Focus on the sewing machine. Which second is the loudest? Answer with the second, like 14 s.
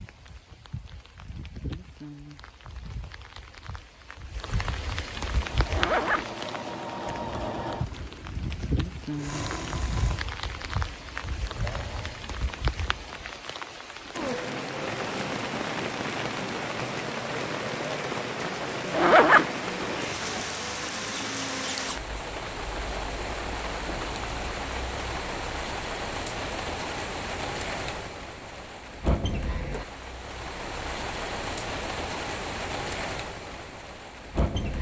7 s.